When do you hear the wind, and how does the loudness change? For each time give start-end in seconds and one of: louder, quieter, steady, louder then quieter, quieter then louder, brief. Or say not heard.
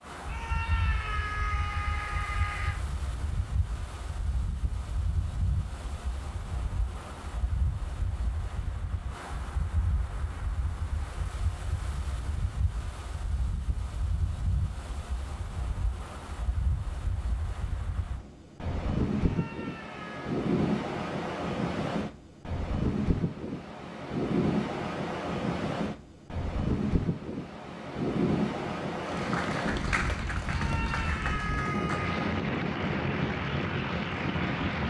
0.0-34.8 louder.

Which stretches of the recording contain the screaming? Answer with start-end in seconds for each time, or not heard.
0.2-2.8, 19.1-20.4, 30.4-32.4.